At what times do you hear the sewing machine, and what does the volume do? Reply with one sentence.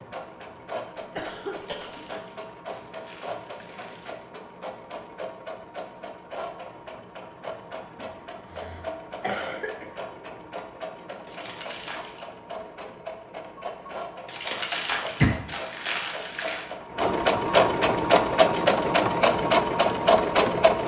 You can hear the sewing machine from 0.0 to 20.8 s, getting louder.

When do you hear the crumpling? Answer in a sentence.
You can hear the crumpling from 1.4 to 4.2 s, from 11.2 to 12.2 s and from 14.2 to 16.6 s.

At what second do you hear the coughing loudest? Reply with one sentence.
The loudest moment of the coughing is at 15 seconds.